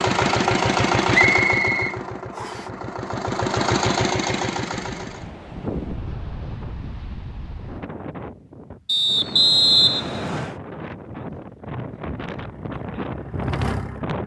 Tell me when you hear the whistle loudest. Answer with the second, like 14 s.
10 s.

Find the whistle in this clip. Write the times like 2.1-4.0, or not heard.
1.3-2.6, 8.8-10.6.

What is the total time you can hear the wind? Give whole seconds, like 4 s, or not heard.
9 s.